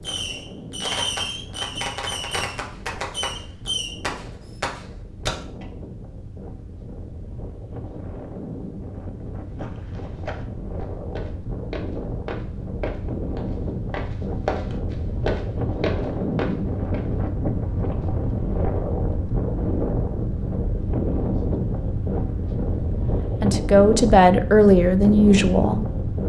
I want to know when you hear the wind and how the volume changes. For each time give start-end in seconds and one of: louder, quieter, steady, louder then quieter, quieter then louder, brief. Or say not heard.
0.0-26.2 louder.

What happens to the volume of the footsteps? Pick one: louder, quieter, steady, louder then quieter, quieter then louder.
louder.